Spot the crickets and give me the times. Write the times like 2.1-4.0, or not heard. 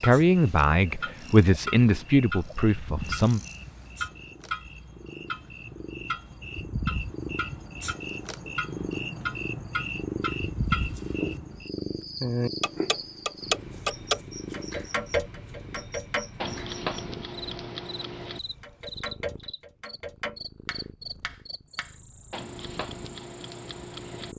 0.0-24.3.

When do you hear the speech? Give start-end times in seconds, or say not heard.
0.0-3.4.